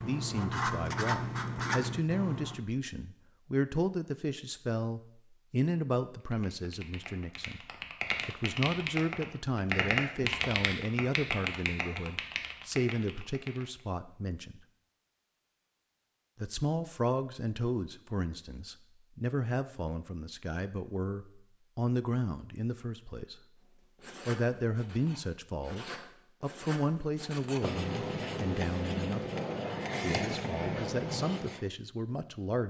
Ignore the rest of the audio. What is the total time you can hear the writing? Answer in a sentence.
The writing can be heard for 10 seconds in total.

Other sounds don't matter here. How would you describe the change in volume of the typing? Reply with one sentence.
The loudness of the typing goes up, then down.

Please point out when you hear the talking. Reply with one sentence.
You can hear the talking from 0.0 to 7.7 s, from 8.2 to 14.7 s, from 16.4 to 23.4 s, from 24.2 to 29.3 s and from 30.0 to 32.6 s.